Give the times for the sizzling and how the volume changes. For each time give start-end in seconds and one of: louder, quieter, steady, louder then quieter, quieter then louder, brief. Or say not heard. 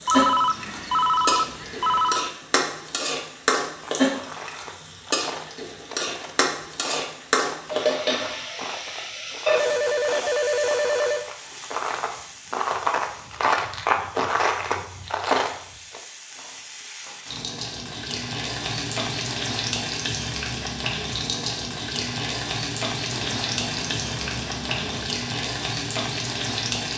0.0-26.9 quieter then louder.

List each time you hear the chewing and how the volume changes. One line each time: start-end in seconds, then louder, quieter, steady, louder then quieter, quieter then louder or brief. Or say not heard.
3.7-16.0 louder.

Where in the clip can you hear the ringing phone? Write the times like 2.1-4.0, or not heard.
0.1-2.4, 9.4-11.2, 23.1-25.1.